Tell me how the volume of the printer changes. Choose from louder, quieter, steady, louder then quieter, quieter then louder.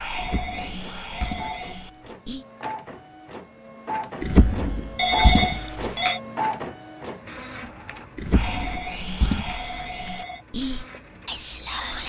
louder then quieter.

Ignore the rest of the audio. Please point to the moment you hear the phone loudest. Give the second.
5 s.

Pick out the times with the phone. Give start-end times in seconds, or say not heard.
0.1-1.9, 5.0-6.2, 8.4-10.4.